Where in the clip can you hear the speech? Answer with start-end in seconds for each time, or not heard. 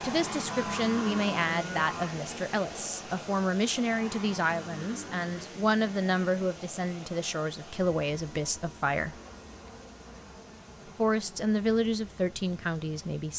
0.0-9.2, 10.9-13.3.